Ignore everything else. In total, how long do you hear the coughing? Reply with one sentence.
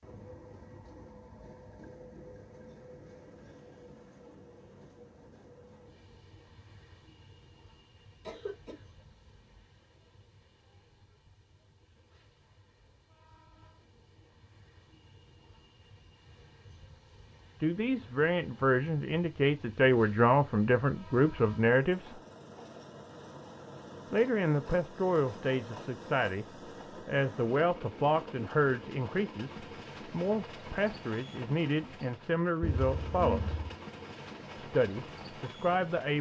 You can hear the coughing for 2 seconds altogether.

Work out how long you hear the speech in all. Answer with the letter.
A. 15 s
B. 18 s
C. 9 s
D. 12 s
A.